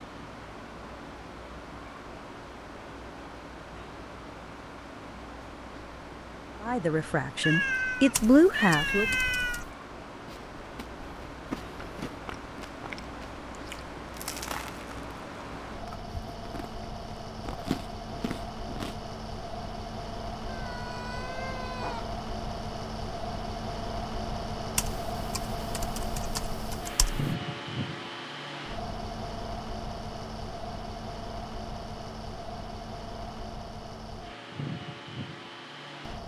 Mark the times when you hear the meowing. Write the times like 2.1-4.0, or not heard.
7.4-9.7, 20.4-22.1.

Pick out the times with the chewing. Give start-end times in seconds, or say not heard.
10.2-18.9.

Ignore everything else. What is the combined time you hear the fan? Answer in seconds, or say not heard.
36 s.